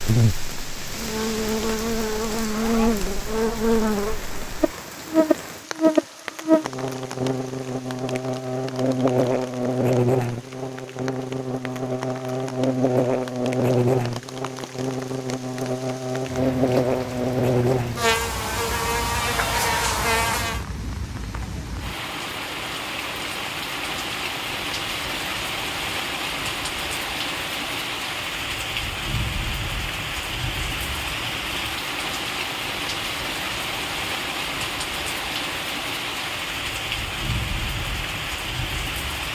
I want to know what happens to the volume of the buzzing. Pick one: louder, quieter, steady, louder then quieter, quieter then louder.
steady.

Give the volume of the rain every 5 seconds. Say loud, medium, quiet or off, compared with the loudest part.
medium, medium, quiet, medium, loud, loud, loud, loud.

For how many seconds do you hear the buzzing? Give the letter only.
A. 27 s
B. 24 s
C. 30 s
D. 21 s
D.